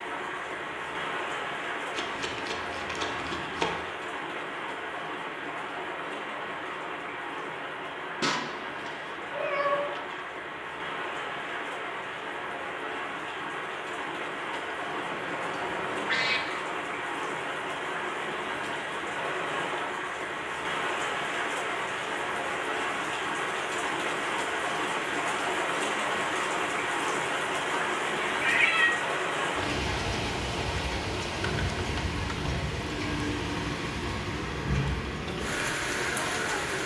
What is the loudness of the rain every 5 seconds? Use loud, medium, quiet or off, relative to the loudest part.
medium, medium, medium, loud, loud, loud, loud, loud.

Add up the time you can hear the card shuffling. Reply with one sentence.
The card shuffling can be heard for 2 seconds in total.